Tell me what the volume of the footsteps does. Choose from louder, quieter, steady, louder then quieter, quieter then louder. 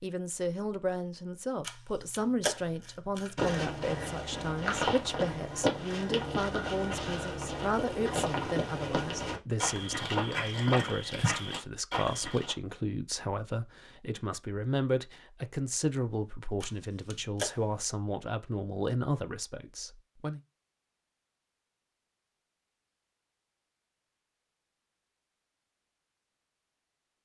steady.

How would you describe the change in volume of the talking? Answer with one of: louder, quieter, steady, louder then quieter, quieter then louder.
steady.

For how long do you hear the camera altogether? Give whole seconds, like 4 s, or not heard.
3 s.